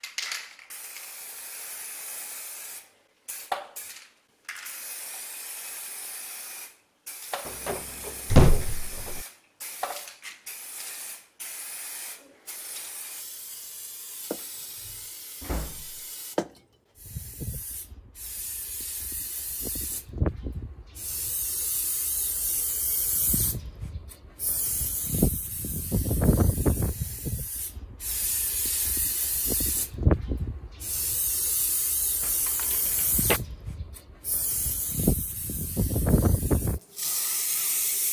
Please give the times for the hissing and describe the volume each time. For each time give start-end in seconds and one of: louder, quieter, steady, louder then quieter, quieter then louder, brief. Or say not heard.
0.0-38.0 louder.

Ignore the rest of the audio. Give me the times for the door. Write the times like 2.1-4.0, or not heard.
7.5-9.2, 14.8-16.0, 32.2-33.4.